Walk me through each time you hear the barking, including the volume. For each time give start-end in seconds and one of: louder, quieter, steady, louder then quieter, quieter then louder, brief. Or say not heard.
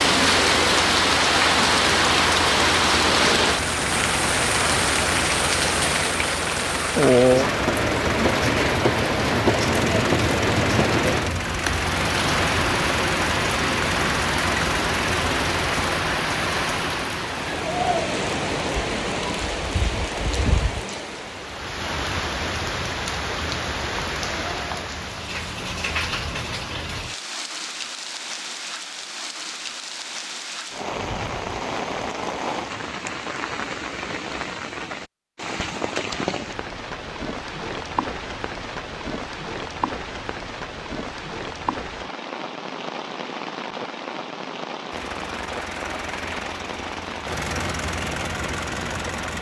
not heard.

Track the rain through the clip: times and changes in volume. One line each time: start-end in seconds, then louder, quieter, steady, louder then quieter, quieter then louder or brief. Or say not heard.
0.0-49.3 quieter.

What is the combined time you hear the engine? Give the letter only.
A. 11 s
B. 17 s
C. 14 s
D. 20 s
D.